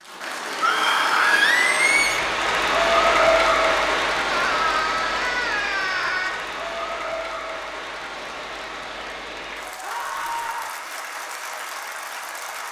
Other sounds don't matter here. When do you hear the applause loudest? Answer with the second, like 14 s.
3 s.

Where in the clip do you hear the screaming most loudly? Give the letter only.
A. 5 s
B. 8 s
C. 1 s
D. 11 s
C.